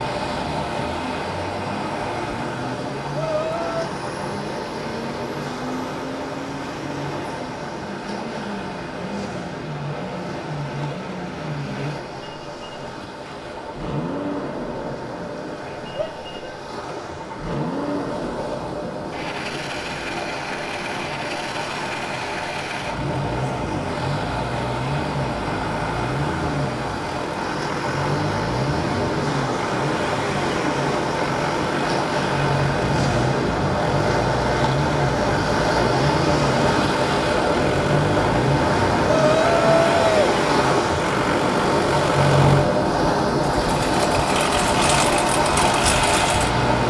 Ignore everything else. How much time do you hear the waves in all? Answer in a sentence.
You can hear the waves for 47 seconds altogether.